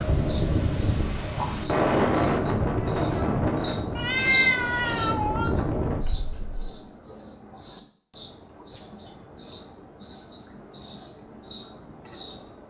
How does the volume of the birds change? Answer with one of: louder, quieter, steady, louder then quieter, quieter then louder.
louder then quieter.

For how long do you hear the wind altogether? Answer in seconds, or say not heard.
7 s.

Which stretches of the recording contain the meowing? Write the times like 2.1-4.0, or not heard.
4.0-5.5.